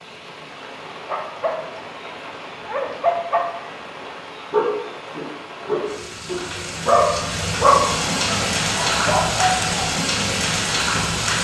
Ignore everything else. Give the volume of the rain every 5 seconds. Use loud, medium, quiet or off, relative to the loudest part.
quiet, loud, loud.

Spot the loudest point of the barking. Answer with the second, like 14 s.
8 s.